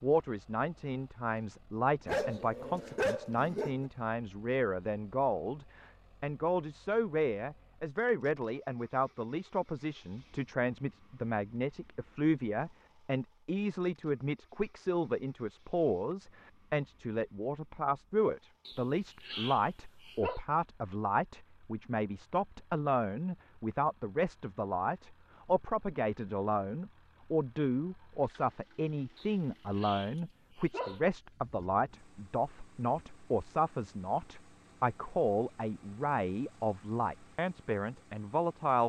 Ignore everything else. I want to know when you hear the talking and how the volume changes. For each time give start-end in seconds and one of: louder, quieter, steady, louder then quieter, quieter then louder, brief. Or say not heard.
0.0-38.8 steady.